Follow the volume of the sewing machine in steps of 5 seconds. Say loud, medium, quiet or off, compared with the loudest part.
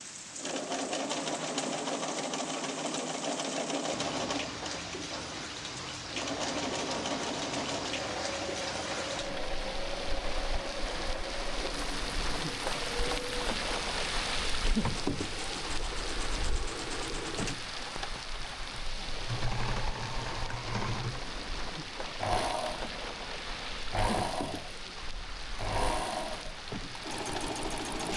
loud, loud, medium, medium, loud, loud.